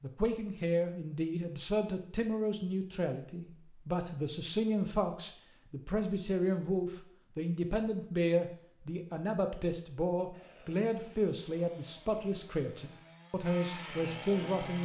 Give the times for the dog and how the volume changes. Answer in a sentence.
You can't hear the dog here.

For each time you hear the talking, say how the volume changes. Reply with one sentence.
The talking can be heard from 0.0 to 14.8 s, at a steady volume.